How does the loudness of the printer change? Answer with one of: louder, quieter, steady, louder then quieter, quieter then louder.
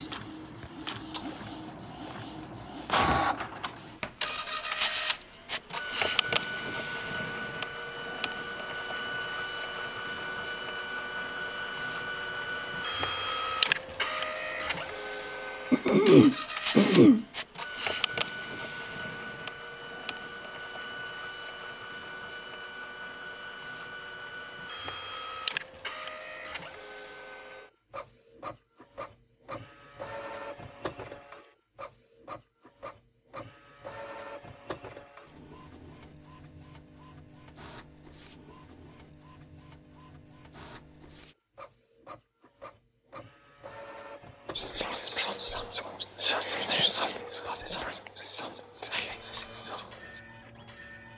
quieter.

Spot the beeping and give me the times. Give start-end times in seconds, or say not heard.
not heard.